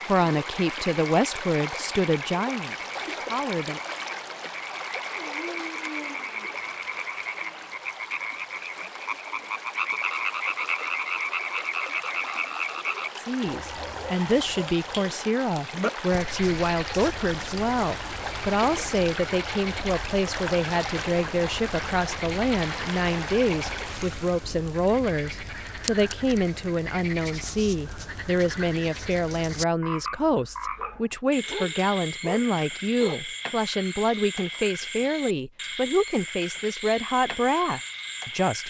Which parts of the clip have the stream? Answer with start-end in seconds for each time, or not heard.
0.0-24.4.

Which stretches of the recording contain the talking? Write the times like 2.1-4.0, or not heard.
0.1-3.8, 13.2-38.6.